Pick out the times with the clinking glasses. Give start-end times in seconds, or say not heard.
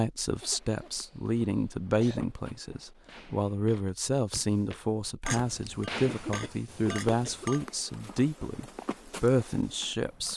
5.2-7.7.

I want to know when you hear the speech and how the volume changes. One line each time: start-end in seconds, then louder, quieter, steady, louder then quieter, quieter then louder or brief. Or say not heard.
0.0-10.3 steady.